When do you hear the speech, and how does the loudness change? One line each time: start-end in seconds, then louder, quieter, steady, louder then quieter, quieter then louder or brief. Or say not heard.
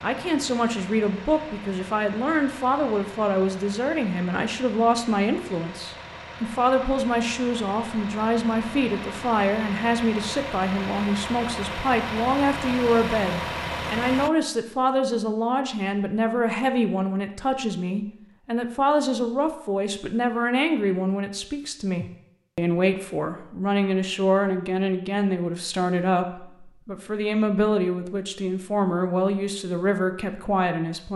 0.0-31.1 steady.